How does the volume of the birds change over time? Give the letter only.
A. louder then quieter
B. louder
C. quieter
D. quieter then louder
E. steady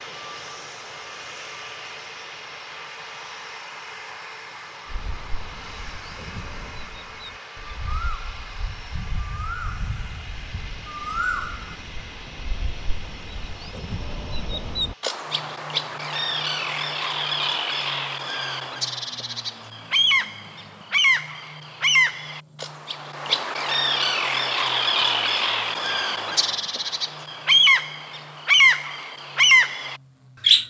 B.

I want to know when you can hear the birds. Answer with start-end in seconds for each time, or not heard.
4.8-30.6.